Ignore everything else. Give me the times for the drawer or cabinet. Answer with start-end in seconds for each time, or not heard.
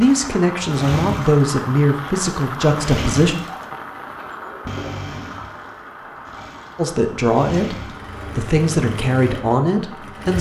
4.2-5.0.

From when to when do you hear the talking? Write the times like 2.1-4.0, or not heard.
0.0-3.4, 6.8-10.3.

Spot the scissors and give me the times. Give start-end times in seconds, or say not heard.
not heard.